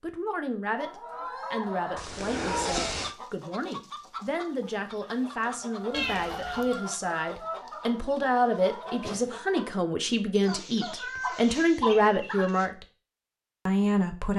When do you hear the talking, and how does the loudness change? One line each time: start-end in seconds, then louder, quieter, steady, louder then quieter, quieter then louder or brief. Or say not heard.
0.0-12.8 louder
13.7-14.3 brief.